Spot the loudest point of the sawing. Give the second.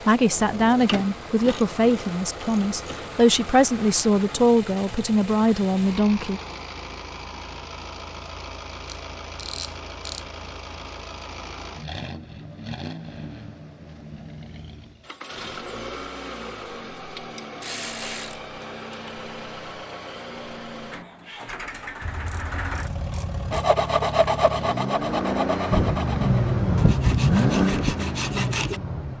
24 s.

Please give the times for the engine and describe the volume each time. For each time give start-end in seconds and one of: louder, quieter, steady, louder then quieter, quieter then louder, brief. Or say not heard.
0.0-29.1 louder.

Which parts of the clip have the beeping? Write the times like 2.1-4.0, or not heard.
not heard.